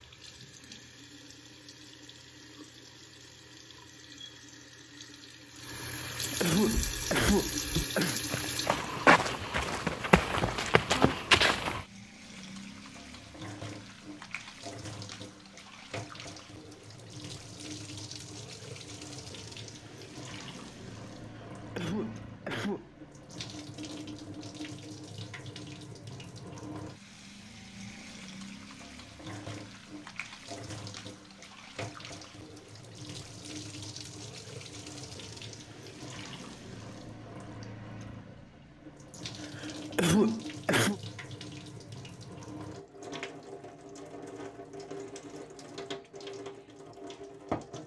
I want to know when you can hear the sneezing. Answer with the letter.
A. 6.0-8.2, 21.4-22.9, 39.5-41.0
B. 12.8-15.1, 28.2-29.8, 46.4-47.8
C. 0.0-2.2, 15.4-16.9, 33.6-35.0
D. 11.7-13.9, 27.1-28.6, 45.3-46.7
A.